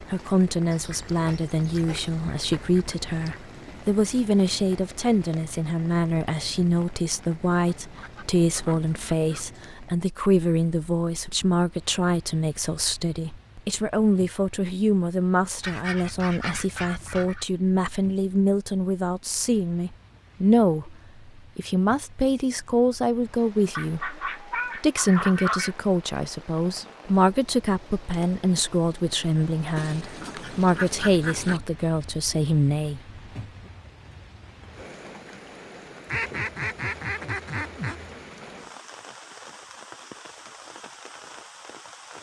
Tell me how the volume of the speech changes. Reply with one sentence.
The volume of the speech stays about the same.